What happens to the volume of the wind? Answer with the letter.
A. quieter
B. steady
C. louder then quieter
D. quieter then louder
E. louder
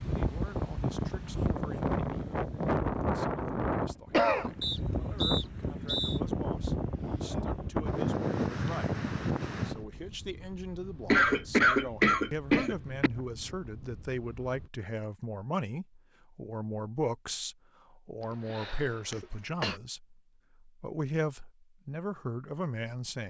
A.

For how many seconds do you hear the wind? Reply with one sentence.
The wind can be heard for 15 seconds in total.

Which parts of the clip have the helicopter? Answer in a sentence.
You can't hear the helicopter here.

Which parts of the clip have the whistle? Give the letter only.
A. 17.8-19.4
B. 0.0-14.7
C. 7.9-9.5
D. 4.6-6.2
D.